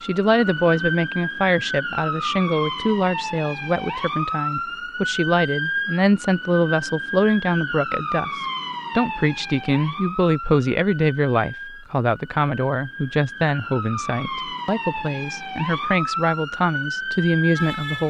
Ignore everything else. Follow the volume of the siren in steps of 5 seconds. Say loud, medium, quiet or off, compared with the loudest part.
loud, loud, medium, loud.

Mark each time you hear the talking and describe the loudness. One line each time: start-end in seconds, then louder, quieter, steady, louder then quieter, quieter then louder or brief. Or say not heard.
0.0-18.0 steady.